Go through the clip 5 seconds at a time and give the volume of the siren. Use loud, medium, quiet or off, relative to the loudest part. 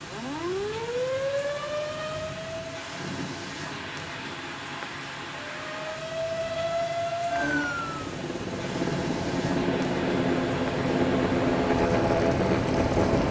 loud, loud, off.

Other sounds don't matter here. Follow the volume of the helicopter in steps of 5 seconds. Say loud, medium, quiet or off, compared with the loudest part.
off, medium, loud.